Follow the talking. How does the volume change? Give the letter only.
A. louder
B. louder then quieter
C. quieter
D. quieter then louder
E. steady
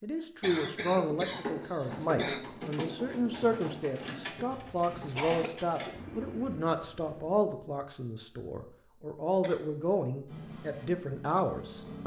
E.